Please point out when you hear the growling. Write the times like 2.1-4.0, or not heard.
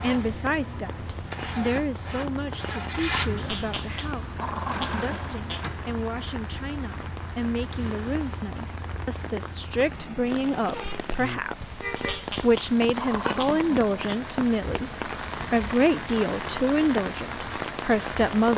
3.4-5.7, 11.9-13.9.